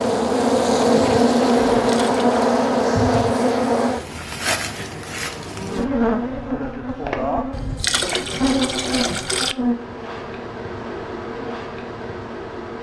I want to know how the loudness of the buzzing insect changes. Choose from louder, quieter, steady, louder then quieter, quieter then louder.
quieter.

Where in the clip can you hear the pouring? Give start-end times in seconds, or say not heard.
1.7-2.5, 7.5-9.6.